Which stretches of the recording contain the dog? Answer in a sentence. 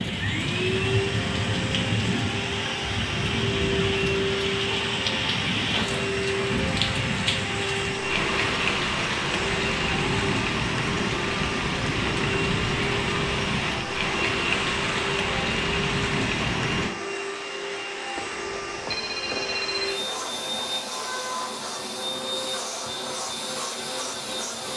You can't hear the dog here.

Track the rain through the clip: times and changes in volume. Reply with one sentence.
You can hear the rain from 0.0 to 16.9 s, at a steady volume.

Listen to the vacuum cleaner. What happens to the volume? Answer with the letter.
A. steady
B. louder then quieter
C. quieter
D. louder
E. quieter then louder
A.